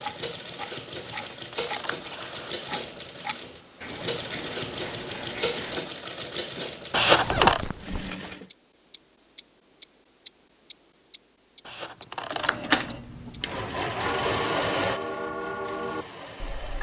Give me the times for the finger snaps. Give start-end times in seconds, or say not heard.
not heard.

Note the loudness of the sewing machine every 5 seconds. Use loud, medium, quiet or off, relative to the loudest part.
medium, medium, loud, quiet.